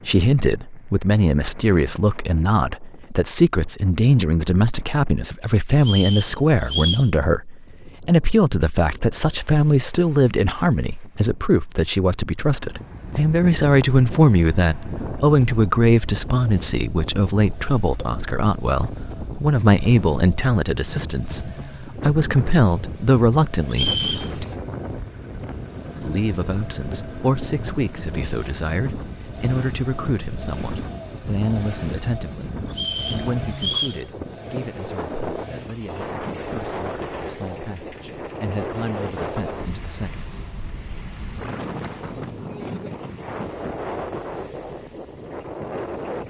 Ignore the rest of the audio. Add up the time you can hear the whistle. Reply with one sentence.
The whistle can be heard for 3 seconds in total.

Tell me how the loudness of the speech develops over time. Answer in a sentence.
The loudness of the speech goes down.